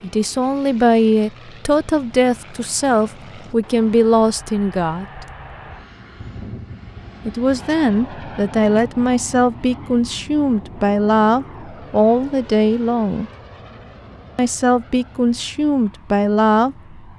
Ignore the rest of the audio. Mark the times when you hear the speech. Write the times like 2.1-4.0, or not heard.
0.0-5.2, 7.2-13.3, 14.3-17.1.